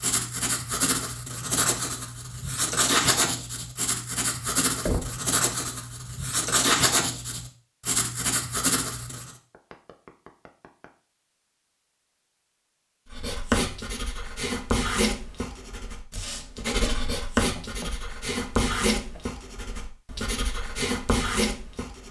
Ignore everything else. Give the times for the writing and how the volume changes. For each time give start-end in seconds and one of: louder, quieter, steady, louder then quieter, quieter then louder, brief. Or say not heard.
0.0-9.3 steady
13.1-22.0 quieter then louder.